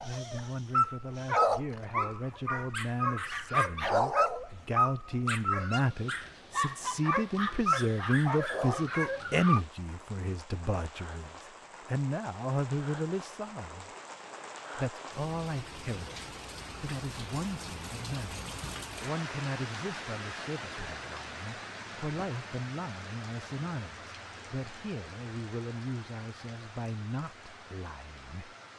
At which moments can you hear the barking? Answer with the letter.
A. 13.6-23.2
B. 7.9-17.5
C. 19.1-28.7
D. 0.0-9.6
D.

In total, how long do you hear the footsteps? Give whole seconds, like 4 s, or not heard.
not heard.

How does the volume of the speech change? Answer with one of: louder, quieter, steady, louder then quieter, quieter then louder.
louder then quieter.